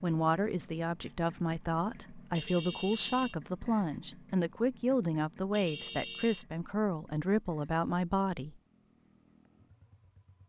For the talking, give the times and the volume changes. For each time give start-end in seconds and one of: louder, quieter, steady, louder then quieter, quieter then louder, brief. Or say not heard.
0.0-8.6 steady.